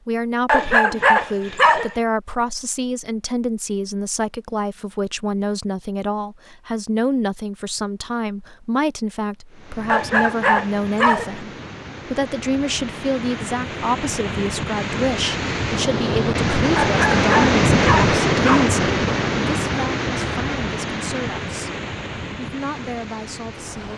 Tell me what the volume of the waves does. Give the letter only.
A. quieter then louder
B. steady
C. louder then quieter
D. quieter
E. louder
C.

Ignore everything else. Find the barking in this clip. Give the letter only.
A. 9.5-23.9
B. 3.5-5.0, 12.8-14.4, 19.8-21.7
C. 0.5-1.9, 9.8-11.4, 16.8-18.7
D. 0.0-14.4
C.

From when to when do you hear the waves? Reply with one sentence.
The waves can be heard from 9.5 to 23.9 s.